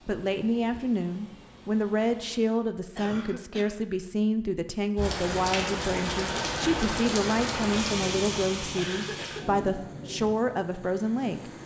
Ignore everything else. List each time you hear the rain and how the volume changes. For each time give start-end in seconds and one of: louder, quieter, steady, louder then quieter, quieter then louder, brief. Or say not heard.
5.0-11.6 quieter.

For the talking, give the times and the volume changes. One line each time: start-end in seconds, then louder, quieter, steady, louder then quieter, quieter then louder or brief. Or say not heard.
0.1-11.5 steady.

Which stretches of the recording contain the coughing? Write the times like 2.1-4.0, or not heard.
3.0-3.8, 8.8-9.6.